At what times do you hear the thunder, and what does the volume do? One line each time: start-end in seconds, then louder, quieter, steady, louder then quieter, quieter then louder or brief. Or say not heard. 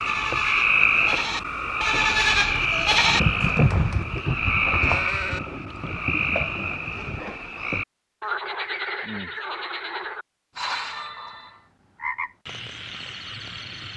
2.8-7.2 quieter.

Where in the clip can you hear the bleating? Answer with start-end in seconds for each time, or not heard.
0.1-5.4.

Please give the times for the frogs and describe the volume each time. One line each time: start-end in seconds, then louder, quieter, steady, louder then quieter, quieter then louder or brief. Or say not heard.
0.0-13.9 quieter.